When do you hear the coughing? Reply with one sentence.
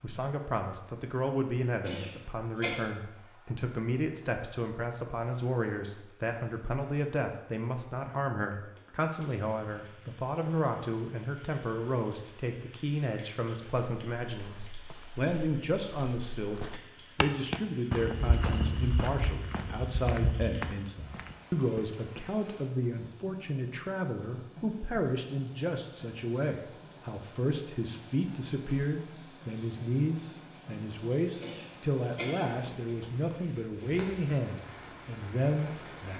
The coughing can be heard from 1.9 to 2.8 s and from 31.4 to 32.7 s.